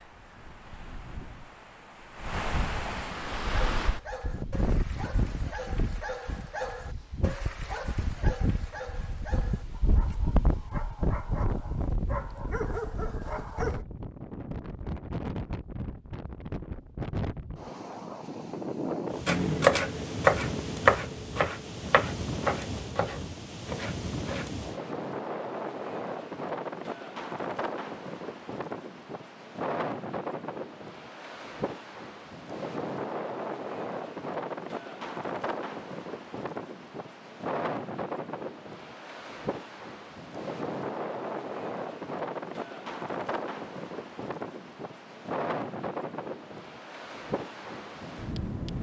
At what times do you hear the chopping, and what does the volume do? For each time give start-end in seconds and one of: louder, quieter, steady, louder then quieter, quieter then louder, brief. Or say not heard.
19.2-24.6 quieter.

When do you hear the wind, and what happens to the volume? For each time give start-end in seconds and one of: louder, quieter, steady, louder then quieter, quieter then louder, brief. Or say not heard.
0.0-48.7 steady.